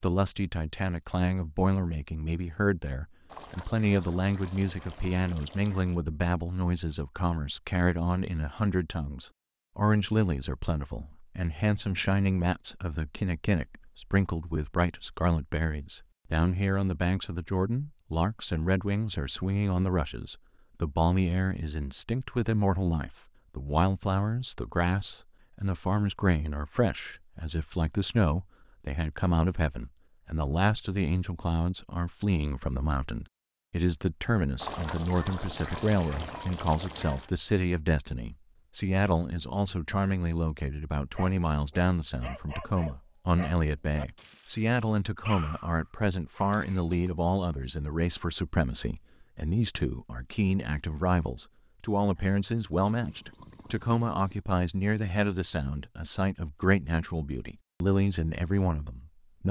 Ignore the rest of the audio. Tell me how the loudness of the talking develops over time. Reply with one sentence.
The loudness of the talking stays about the same.